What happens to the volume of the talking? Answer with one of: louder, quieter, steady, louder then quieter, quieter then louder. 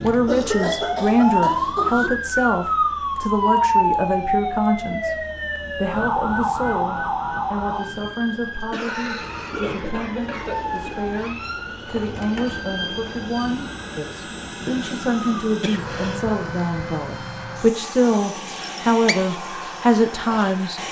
quieter then louder.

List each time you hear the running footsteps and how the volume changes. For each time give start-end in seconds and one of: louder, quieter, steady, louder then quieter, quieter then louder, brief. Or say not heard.
not heard.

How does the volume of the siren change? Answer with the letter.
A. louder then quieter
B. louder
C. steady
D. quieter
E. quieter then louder
D.